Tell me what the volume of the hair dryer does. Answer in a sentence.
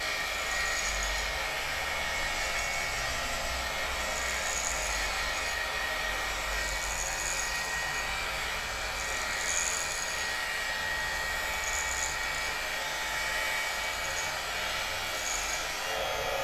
The loudness of the hair dryer stays about the same.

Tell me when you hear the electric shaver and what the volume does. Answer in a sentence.
The electric shaver can be heard from 0.0 to 16.4 s, at a steady volume.